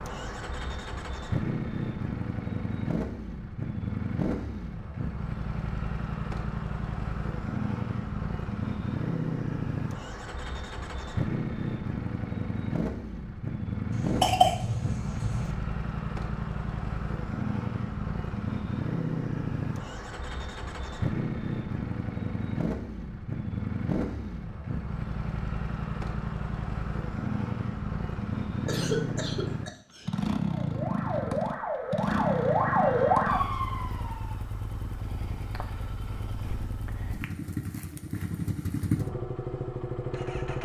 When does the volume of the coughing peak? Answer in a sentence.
The volume of the coughing peaks at 14 seconds.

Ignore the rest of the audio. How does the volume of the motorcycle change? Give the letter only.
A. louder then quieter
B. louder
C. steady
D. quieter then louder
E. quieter
C.